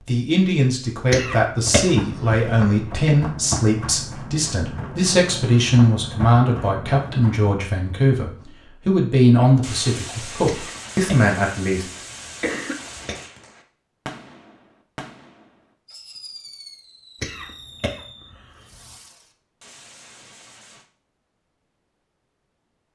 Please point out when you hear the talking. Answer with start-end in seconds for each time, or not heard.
0.1-11.8.